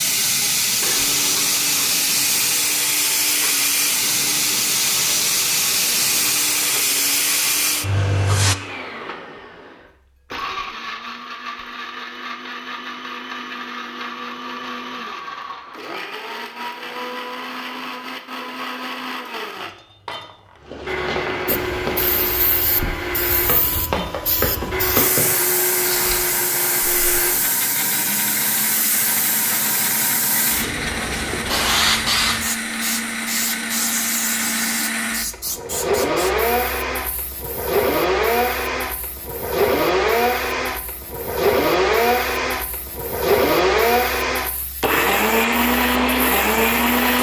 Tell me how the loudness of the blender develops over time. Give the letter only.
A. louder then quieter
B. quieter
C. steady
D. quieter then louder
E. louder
E.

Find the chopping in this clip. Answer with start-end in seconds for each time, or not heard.
not heard.